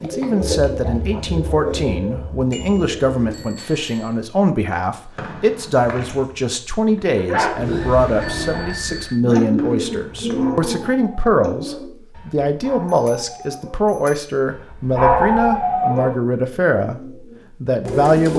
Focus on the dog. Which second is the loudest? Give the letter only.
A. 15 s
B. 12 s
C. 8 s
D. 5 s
A.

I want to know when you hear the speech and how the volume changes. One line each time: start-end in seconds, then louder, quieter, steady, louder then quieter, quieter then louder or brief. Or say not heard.
0.0-18.3 steady.